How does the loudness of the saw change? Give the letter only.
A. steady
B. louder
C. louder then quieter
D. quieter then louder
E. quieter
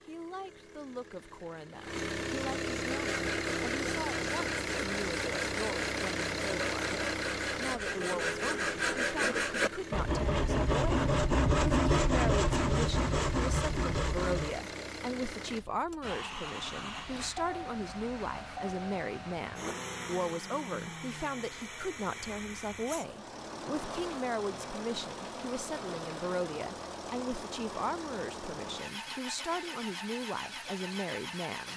B.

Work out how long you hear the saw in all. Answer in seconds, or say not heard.
12 s.